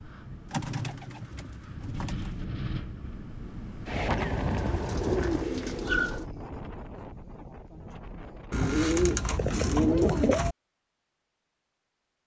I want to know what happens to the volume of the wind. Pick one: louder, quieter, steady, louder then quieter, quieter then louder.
louder then quieter.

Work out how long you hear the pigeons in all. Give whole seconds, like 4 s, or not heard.
6 s.